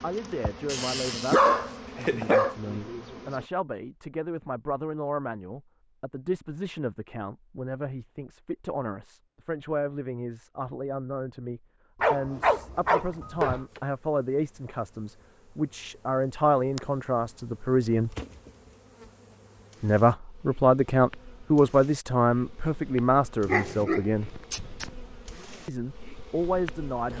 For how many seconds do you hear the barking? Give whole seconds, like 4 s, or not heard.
5 s.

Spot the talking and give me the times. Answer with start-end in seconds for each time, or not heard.
0.0-18.1, 19.8-24.3, 25.6-27.1.